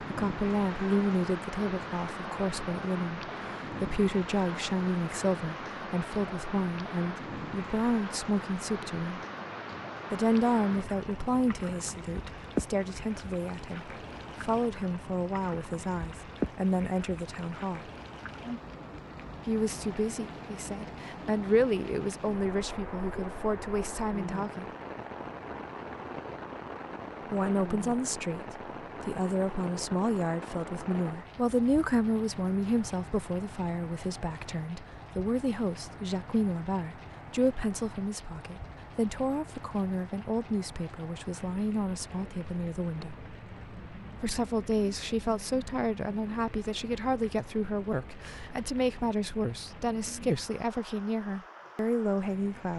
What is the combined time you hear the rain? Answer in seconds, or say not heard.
53 s.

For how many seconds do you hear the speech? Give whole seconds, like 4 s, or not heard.
47 s.